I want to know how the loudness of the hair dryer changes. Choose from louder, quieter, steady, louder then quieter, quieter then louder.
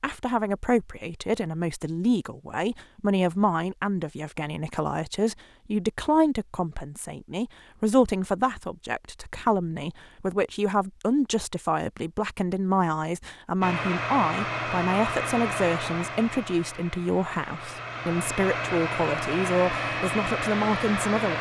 quieter then louder.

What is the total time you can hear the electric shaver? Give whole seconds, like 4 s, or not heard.
not heard.